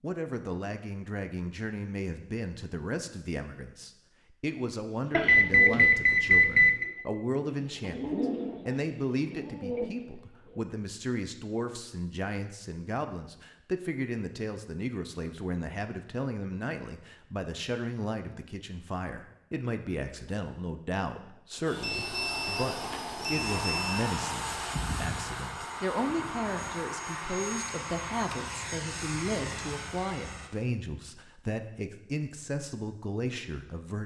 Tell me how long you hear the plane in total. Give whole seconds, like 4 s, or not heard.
9 s.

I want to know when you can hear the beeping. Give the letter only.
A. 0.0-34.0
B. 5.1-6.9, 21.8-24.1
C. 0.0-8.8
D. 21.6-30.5
B.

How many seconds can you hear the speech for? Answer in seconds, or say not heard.
34 s.